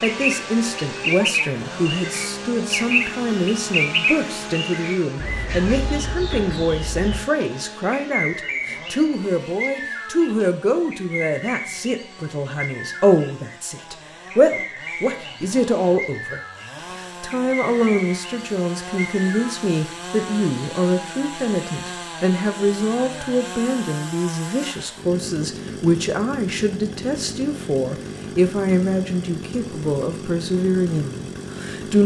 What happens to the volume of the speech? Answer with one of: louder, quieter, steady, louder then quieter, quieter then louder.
steady.